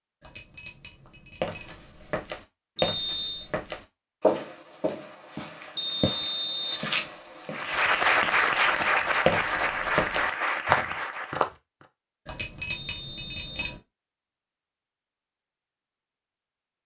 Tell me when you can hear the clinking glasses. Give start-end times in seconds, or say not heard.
0.2-1.8, 7.7-9.2, 12.2-13.8.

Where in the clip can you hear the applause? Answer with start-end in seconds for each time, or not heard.
7.5-11.4.